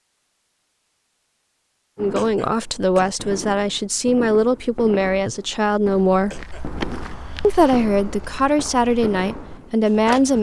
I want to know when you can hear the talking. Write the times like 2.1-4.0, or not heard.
1.9-6.4, 7.4-10.3.